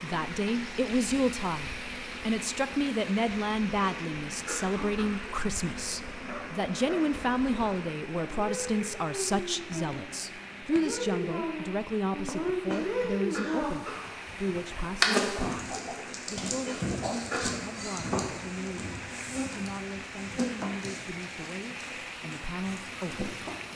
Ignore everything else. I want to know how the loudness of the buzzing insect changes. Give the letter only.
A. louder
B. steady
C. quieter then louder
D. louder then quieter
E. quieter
D.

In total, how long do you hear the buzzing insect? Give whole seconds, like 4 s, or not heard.
24 s.